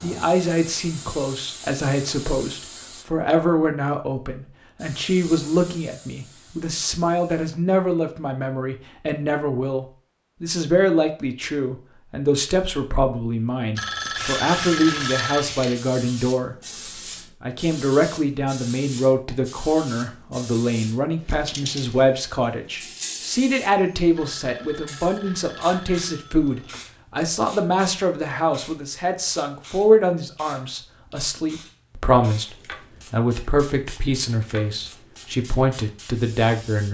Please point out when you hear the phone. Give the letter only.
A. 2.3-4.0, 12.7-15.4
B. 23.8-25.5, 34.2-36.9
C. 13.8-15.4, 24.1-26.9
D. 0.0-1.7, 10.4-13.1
C.